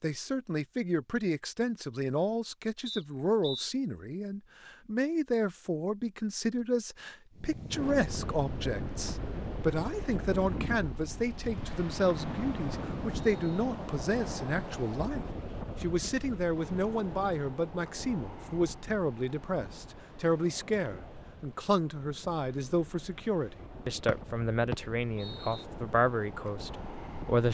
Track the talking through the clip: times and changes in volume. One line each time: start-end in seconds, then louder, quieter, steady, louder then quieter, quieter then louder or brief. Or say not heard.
0.0-27.5 steady.